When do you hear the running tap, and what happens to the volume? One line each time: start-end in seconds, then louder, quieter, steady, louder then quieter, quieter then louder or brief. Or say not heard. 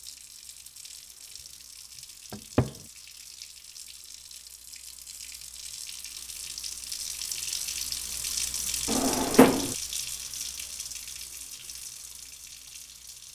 0.0-13.3 louder then quieter.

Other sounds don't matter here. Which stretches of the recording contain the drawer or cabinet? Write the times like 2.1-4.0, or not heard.
2.3-2.8, 8.8-9.8.